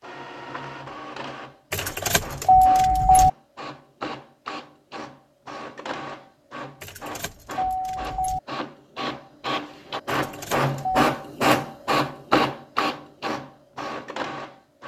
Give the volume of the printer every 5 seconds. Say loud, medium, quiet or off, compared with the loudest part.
quiet, medium, loud.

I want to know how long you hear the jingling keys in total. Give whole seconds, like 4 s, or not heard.
4 s.